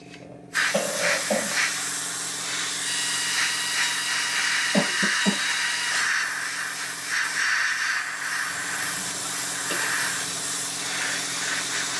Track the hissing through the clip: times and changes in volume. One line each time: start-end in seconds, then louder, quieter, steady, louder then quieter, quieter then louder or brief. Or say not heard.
0.0-11.9 steady.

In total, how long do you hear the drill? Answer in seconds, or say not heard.
3 s.